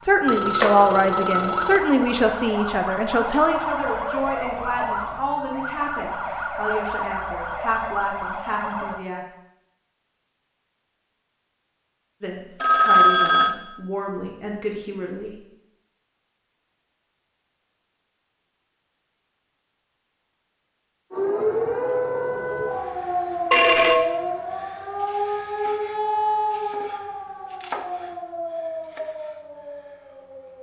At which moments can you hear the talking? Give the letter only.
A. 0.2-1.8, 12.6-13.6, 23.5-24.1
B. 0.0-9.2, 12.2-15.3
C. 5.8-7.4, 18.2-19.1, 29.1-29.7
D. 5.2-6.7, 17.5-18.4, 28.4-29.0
B.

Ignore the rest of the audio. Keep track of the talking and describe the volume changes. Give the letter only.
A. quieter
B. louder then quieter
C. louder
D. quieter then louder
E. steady
A.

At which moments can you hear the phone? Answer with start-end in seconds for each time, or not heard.
0.2-1.8, 12.6-13.6, 23.5-24.1.